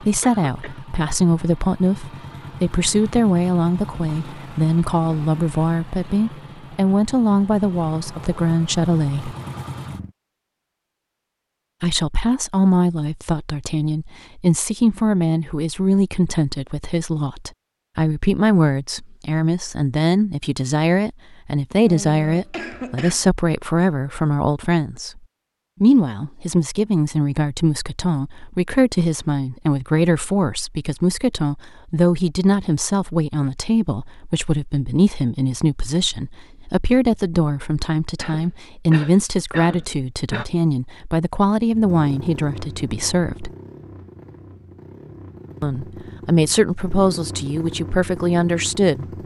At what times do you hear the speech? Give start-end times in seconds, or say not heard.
0.0-9.3, 11.8-25.2, 25.8-43.5, 45.6-49.0.